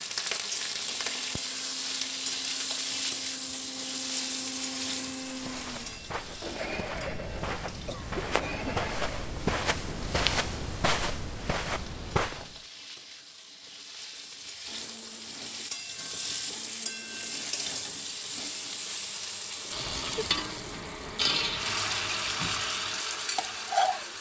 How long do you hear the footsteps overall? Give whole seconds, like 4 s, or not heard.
7 s.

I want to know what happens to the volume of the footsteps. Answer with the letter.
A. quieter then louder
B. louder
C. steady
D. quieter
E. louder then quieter
B.